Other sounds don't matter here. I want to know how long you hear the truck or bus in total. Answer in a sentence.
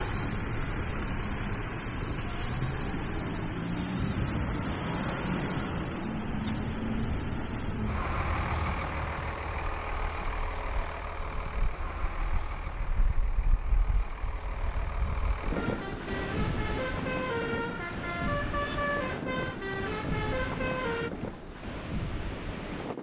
You can hear the truck or bus for 21 seconds altogether.